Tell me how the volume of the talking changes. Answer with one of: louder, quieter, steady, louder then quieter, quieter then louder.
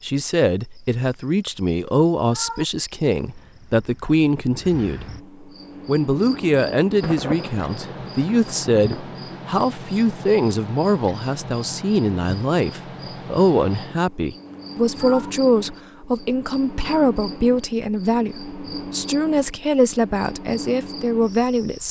steady.